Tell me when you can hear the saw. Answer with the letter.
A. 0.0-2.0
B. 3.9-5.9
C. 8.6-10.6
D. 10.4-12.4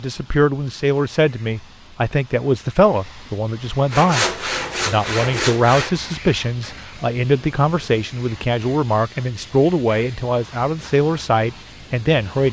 B.